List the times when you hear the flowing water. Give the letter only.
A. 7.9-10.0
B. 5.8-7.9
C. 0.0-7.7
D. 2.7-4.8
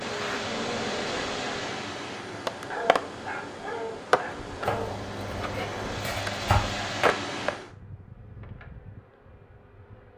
C.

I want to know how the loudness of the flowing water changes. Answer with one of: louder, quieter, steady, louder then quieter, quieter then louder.
quieter then louder.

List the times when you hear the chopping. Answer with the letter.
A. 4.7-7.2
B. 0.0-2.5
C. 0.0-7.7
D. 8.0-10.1
A.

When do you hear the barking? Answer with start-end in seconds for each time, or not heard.
2.7-4.8.